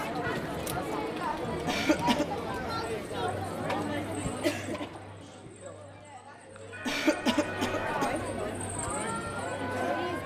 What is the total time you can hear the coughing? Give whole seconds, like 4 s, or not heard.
2 s.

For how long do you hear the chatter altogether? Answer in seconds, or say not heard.
10 s.